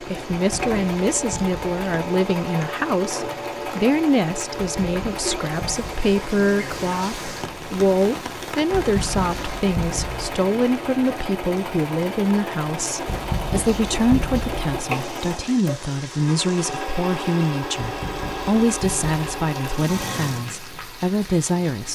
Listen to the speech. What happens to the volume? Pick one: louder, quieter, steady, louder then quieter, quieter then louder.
steady.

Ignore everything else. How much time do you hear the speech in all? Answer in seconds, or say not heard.
22 s.